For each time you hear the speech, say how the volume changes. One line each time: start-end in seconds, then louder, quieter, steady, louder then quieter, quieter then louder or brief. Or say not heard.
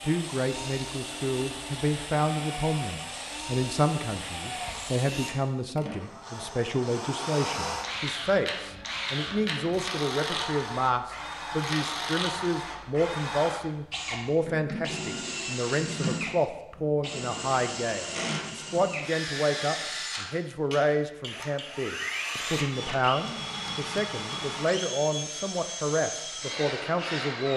0.0-27.5 steady.